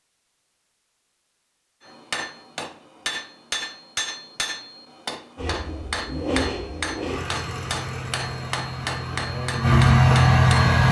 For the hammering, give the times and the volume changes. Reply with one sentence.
You can hear the hammering from 1.9 to 10.8 s, at a steady volume.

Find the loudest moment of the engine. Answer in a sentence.
The loudest moment of the engine is at 10 seconds.